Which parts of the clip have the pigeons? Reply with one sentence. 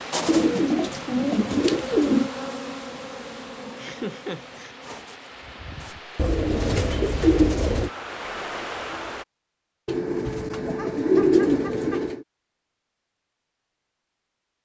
You can hear the pigeons from 0.2 to 2.3 s, from 6.2 to 7.9 s and from 9.8 to 12.2 s.